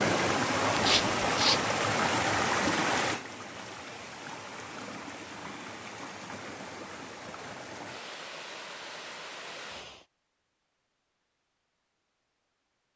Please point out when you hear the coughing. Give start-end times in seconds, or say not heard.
not heard.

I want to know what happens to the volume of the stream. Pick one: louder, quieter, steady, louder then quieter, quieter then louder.
quieter.